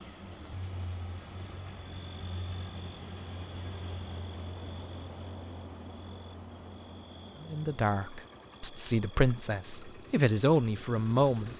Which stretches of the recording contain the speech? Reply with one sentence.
You can hear the speech from 7.4 to 11.5 s.